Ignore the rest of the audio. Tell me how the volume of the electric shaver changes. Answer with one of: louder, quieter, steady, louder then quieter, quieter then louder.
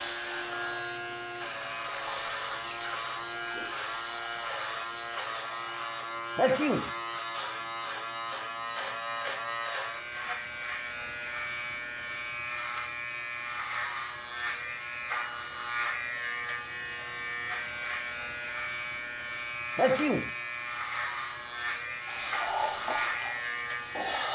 steady.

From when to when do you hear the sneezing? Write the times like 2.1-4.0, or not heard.
6.3-6.9, 19.8-20.3.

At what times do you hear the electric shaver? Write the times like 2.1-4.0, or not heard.
0.0-24.3.